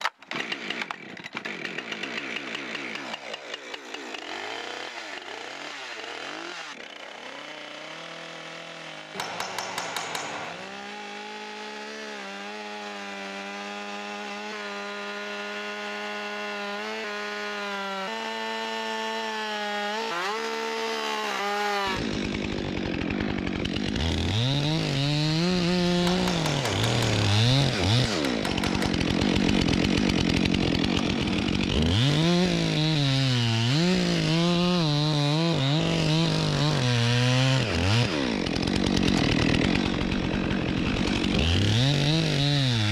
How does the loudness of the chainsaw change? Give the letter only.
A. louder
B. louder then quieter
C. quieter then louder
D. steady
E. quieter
A.